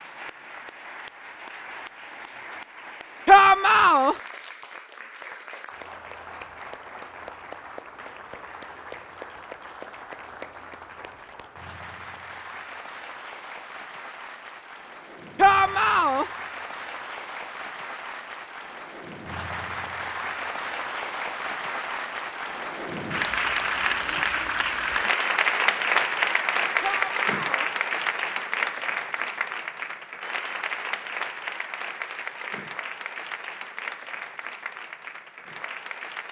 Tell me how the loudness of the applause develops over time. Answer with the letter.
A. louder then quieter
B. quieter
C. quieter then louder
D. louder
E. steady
A.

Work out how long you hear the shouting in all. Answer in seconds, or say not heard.
3 s.